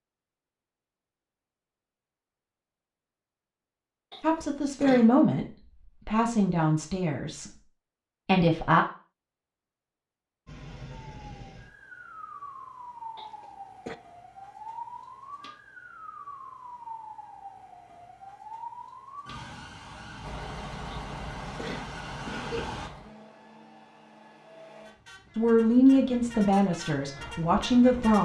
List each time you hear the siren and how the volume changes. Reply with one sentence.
You can hear the siren from 10.4 to 22.9 s, at a steady volume.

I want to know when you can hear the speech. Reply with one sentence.
The speech can be heard from 4.2 to 7.5 s, from 8.2 to 8.8 s and from 25.4 to 28.1 s.